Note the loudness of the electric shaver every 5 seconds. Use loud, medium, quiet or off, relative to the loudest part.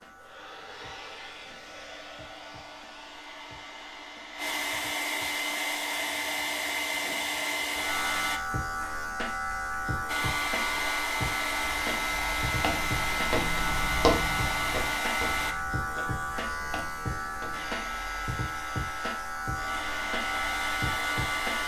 quiet, loud, loud, loud, loud.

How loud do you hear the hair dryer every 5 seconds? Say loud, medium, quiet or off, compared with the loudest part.
medium, loud, loud, medium, loud.